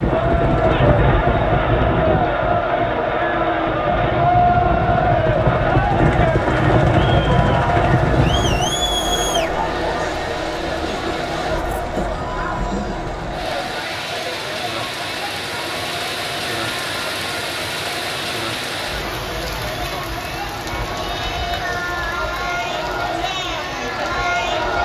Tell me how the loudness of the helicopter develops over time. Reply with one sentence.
The volume of the helicopter goes down, then up.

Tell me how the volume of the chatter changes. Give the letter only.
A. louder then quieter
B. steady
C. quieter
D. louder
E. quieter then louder
E.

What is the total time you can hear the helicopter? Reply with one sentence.
The helicopter can be heard for 9 seconds in total.